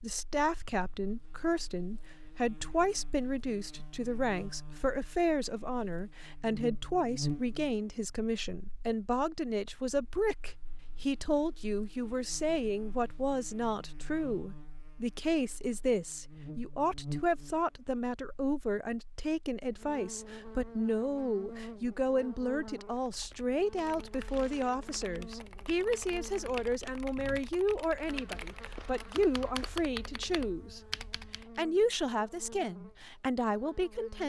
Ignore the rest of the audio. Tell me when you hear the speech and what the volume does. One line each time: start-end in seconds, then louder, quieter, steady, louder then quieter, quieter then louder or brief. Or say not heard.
0.0-30.8 steady
31.6-34.2 brief.